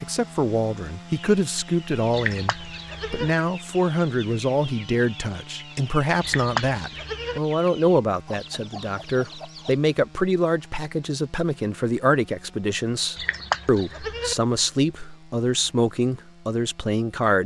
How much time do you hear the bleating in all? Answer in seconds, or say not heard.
4 s.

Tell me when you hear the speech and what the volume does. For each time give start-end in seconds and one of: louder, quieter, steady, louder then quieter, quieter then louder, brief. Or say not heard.
0.0-17.4 steady.